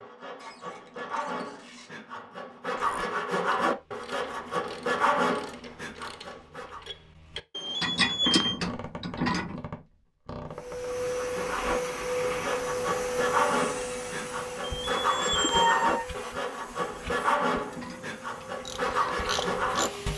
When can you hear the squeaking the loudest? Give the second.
16 s.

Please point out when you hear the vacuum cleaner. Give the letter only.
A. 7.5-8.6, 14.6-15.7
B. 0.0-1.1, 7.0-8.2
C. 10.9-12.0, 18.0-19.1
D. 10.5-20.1
D.